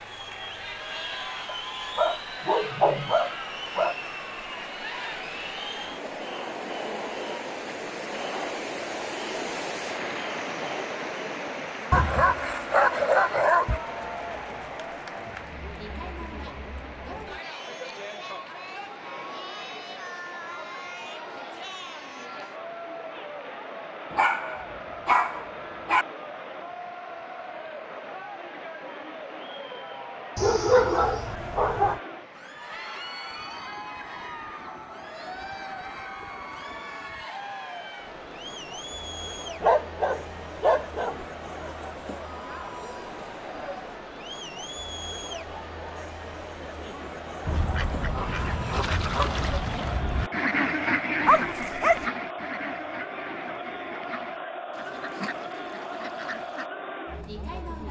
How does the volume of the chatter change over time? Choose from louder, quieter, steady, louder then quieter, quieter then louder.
steady.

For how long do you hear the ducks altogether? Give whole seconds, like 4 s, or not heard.
9 s.